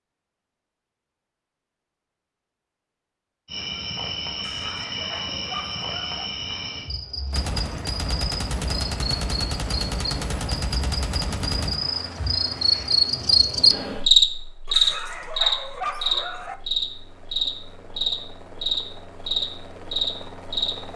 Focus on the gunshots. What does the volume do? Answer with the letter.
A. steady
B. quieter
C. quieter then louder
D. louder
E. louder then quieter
A.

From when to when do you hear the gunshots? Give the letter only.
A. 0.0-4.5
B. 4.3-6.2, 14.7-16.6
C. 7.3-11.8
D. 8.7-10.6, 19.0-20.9
C.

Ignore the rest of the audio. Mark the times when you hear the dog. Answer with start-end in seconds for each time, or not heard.
4.3-6.2, 14.7-16.6.